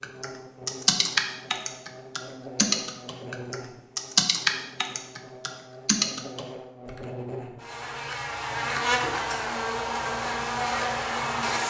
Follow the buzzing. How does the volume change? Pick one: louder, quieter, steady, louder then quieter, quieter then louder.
louder.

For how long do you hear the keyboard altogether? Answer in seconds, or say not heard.
7 s.